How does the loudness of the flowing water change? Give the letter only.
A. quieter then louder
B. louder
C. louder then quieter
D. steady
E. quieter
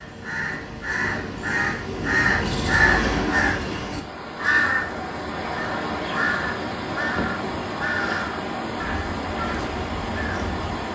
D.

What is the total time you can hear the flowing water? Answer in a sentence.
You can hear the flowing water for 7 seconds altogether.